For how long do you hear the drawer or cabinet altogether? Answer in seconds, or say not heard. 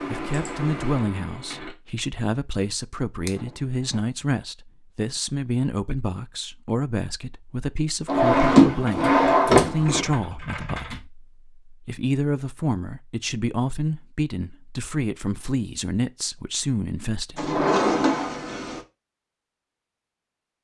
4 s.